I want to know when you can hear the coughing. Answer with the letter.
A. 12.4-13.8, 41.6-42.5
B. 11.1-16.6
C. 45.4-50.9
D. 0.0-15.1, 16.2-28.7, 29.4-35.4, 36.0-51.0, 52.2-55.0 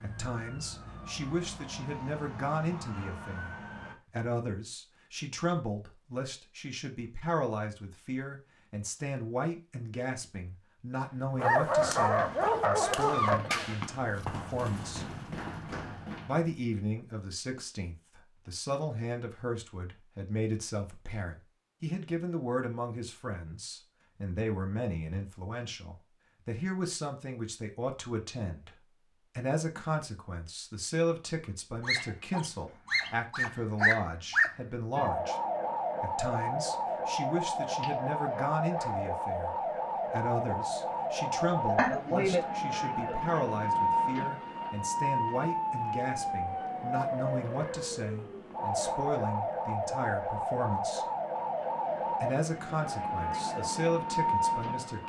A.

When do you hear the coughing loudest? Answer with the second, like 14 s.
42 s.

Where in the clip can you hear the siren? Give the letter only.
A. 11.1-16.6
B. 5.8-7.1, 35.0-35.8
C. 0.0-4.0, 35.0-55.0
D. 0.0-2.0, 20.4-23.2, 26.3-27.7
C.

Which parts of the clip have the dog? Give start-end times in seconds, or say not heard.
11.3-13.4, 31.8-34.5, 37.6-39.0.